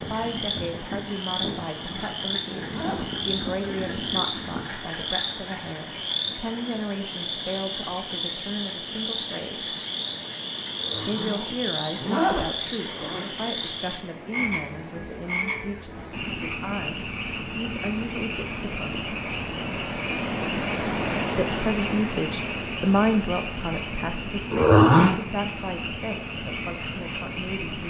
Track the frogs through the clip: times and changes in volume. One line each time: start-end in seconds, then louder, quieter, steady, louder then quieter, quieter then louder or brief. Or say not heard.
0.0-27.8 steady.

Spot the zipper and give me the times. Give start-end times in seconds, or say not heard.
1.6-3.1, 10.8-13.3, 24.5-25.1.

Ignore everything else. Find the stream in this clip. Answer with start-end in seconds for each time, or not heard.
0.0-27.8.